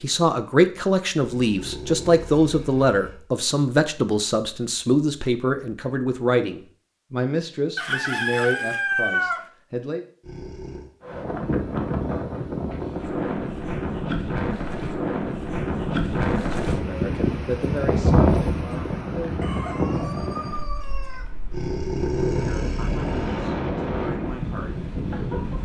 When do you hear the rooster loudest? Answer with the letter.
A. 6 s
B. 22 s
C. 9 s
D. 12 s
C.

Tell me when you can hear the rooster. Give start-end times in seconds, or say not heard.
7.8-9.4, 19.4-21.3.